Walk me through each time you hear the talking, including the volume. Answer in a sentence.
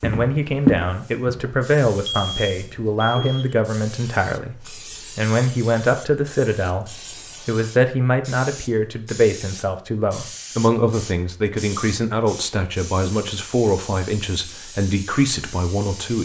The talking can be heard from 0.0 to 16.2 s, at a steady volume.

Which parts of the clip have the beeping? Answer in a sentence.
You can hear the beeping from 2.0 to 3.5 s.